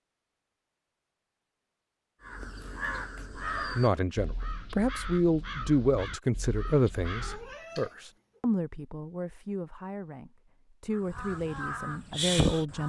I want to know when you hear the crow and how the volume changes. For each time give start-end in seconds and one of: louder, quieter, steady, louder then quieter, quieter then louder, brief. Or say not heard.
2.2-7.5 quieter
10.9-12.8 brief.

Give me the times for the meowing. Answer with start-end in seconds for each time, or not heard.
7.2-8.4.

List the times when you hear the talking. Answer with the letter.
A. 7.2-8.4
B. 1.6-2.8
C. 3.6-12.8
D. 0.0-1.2
C.